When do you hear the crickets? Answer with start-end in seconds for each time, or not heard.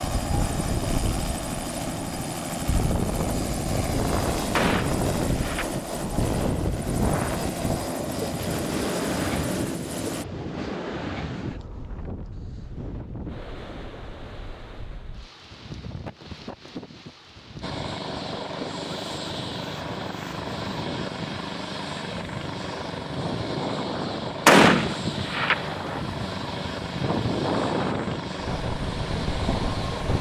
not heard.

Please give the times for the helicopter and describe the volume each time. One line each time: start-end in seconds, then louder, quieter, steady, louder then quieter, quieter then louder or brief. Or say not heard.
0.0-10.2 steady
17.6-30.1 steady.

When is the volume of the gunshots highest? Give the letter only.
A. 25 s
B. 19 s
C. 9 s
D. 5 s
A.